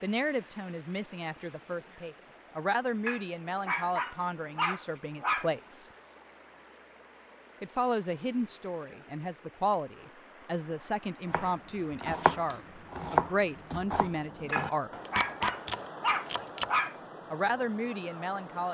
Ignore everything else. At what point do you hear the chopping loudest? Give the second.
13 s.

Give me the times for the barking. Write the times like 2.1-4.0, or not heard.
3.0-5.5, 14.5-16.9.